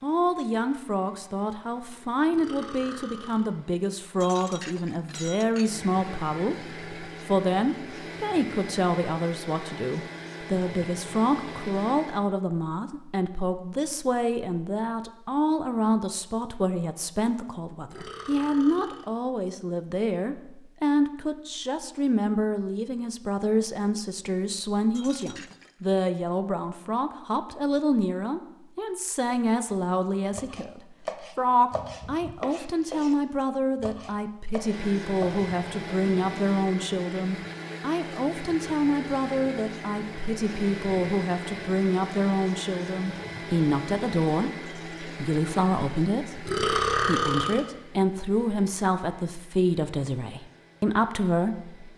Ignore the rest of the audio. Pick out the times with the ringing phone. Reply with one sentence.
The ringing phone can't be heard in this clip.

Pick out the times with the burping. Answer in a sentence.
The burping can be heard from 2.3 to 3.5 s, from 17.9 to 19.1 s and from 46.5 to 47.6 s.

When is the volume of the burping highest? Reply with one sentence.
The volume of the burping peaks at 47 seconds.